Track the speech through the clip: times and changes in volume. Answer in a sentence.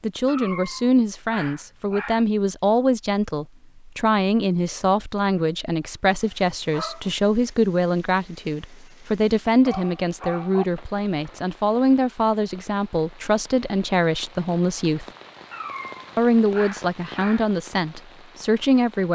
The speech can be heard from 0.0 to 15.1 s, at a steady volume; and briefly from 16.1 to 19.1 s.